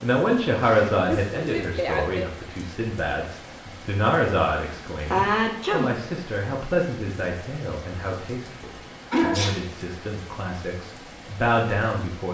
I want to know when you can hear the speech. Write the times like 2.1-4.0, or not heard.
0.0-12.2.